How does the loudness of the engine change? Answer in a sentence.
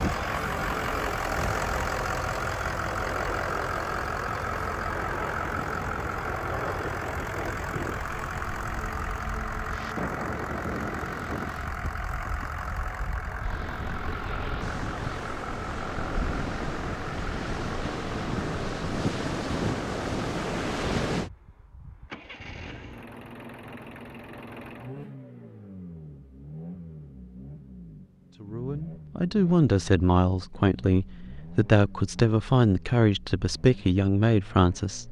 The volume of the engine goes down.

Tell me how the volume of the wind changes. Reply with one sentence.
The loudness of the wind goes up.